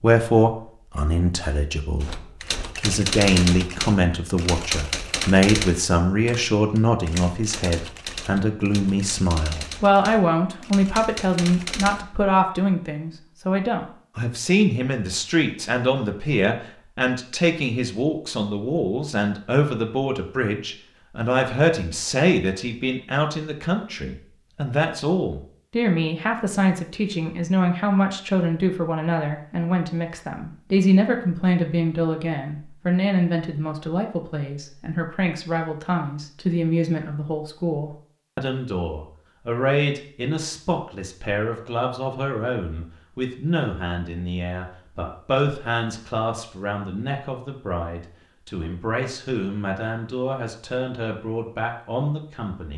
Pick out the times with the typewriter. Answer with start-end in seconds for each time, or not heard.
2.0-12.1.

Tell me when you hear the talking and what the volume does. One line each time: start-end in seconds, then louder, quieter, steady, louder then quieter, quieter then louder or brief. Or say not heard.
0.0-2.2 brief
2.8-52.7 quieter.